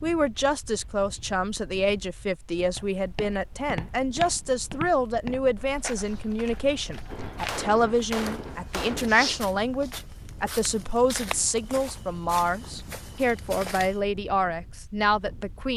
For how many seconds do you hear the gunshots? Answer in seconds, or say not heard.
2 s.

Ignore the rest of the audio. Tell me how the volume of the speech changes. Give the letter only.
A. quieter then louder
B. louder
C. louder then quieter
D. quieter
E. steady
E.